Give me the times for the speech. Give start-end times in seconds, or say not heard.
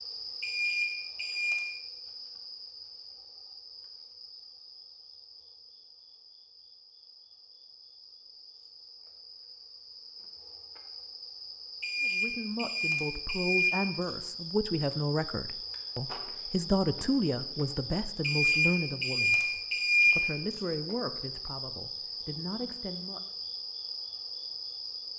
12.0-23.2.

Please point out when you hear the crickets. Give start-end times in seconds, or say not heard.
0.0-25.1.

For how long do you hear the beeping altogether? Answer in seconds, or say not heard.
5 s.